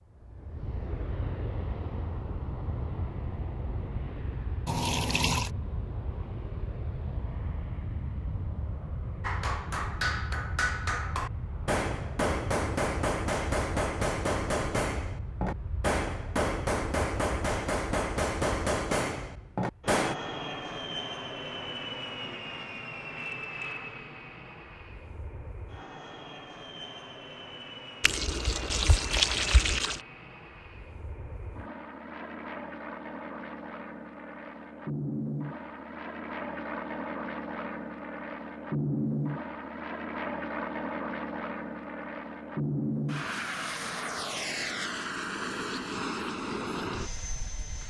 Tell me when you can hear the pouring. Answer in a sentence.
You can hear the pouring from 4.7 to 5.5 s and from 28.0 to 30.0 s.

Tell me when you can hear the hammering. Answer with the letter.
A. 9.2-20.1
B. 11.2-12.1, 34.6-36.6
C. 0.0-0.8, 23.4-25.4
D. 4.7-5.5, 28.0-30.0
A.